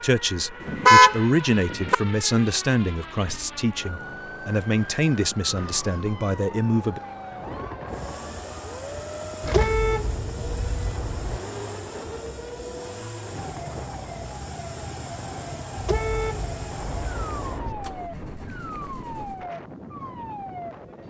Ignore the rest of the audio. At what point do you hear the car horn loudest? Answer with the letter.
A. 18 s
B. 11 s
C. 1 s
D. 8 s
C.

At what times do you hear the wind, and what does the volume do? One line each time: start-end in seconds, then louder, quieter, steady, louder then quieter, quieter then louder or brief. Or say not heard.
7.3-21.0 steady.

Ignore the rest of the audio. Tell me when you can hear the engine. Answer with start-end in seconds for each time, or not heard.
7.8-19.5.